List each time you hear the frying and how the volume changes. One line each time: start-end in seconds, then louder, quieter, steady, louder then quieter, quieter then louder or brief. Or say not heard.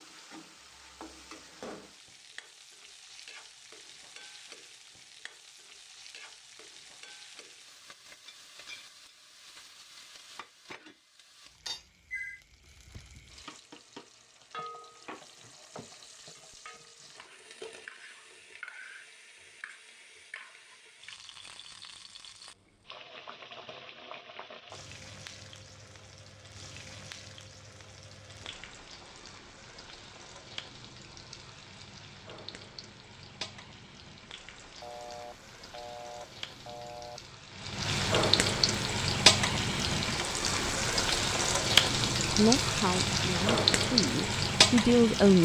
0.0-45.3 louder.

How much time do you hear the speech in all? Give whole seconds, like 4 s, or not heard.
3 s.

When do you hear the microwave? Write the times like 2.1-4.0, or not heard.
not heard.